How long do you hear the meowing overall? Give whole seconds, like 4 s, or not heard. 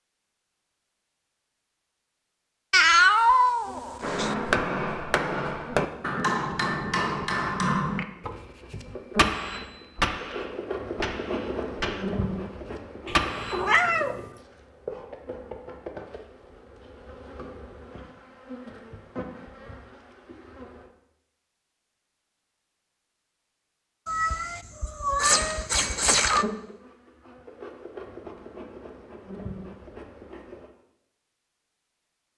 5 s.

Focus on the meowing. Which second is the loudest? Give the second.
3 s.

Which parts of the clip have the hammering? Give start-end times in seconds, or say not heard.
4.0-13.8.